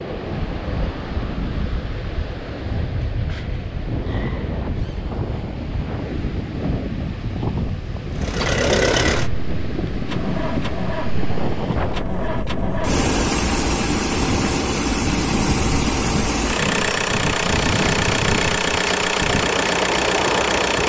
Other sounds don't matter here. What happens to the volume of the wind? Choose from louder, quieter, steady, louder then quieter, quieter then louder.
steady.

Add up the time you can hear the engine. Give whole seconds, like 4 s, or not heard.
13 s.